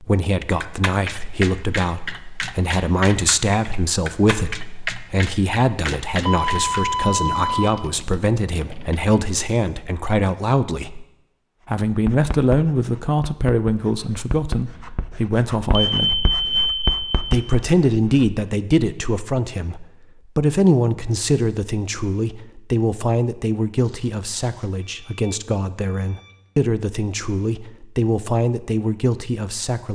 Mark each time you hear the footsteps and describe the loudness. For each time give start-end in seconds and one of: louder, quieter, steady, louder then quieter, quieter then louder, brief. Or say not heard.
not heard.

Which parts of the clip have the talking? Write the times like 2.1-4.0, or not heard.
0.0-11.1, 11.7-16.1, 17.2-29.9.